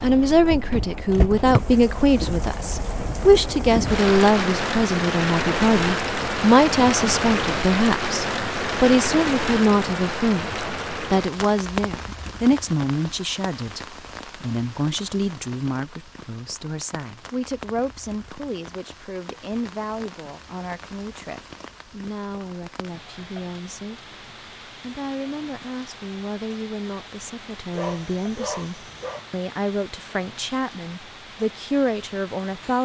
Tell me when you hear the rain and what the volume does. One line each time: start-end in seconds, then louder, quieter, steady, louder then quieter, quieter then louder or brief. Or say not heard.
0.0-32.8 quieter.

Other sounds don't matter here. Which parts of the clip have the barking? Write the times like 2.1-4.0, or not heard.
27.7-29.2.